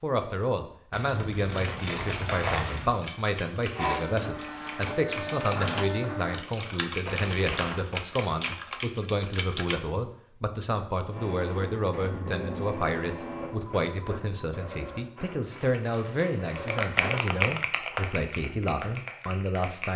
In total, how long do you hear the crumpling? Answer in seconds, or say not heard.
5 s.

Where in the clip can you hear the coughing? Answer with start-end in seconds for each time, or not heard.
not heard.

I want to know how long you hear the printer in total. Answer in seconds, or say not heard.
9 s.